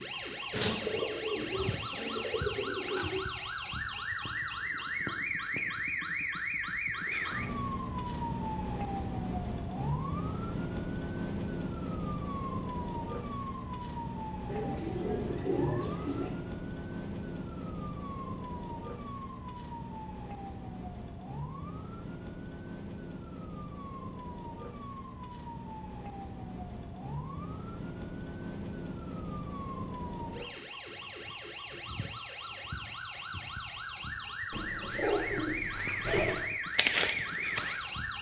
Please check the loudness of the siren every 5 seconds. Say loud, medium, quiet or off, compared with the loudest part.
loud, loud, loud, medium, medium, medium, medium, loud.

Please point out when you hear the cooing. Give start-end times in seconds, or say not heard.
0.5-3.2, 14.4-16.3, 34.5-36.5.